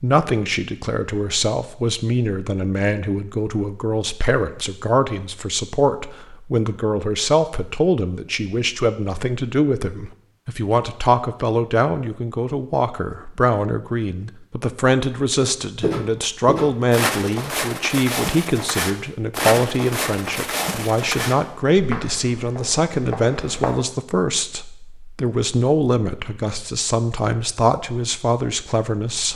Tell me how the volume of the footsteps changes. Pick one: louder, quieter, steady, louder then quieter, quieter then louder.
quieter.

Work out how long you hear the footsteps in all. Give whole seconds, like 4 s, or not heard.
8 s.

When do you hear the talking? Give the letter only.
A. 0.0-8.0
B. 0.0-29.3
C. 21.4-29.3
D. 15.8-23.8
B.